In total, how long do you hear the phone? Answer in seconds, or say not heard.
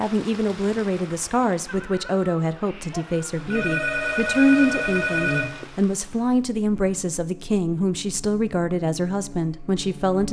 2 s.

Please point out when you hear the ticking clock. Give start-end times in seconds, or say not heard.
not heard.